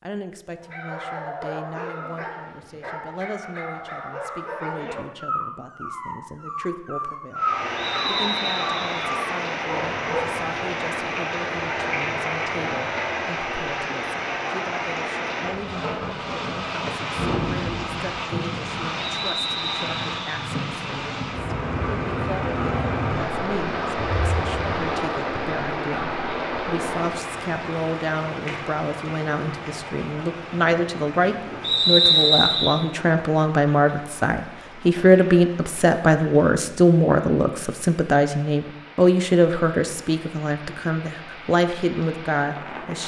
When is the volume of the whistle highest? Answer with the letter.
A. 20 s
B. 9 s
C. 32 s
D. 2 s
C.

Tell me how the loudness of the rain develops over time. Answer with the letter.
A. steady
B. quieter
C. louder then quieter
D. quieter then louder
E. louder
B.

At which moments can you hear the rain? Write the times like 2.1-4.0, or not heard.
7.3-43.0.